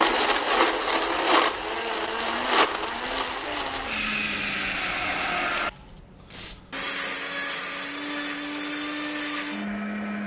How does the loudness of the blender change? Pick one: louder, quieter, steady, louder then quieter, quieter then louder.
quieter.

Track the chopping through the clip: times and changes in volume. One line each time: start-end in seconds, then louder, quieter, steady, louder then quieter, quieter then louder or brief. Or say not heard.
not heard.